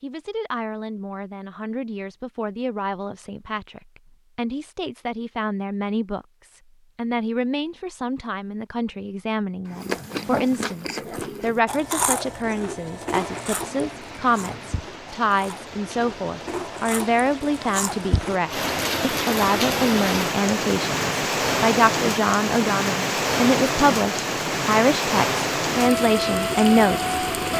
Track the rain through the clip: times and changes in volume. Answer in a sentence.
The rain can be heard from 13.1 to 27.5 s, getting louder.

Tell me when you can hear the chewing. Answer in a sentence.
The chewing can be heard from 9.7 to 18.6 s.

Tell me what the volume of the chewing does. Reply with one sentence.
The volume of the chewing goes down, then up.